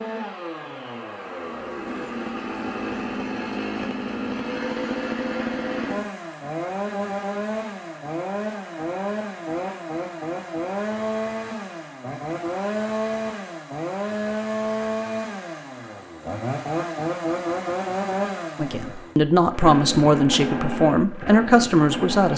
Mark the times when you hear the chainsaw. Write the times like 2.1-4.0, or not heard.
0.0-22.3.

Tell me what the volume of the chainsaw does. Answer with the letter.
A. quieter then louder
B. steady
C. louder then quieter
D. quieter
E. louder
B.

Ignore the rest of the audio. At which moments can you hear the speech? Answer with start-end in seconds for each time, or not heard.
18.6-22.3.